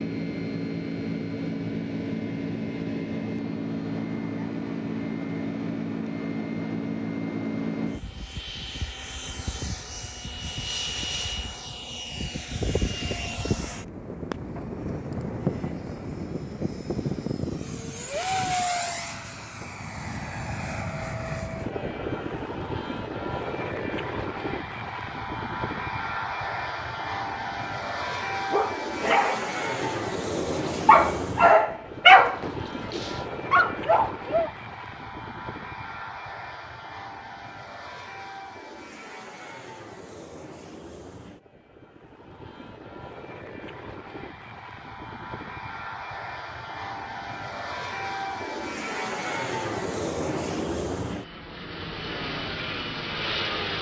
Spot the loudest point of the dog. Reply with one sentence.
The volume of the dog peaks at 32 seconds.